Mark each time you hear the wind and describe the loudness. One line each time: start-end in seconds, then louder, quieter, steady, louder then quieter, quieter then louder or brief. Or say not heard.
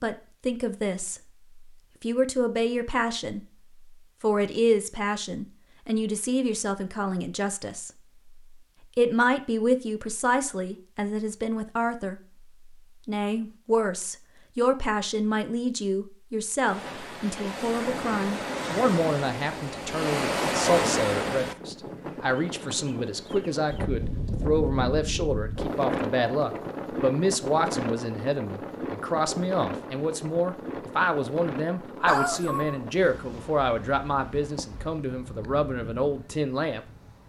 16.6-37.2 quieter.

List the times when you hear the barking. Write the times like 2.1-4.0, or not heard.
32.0-33.1.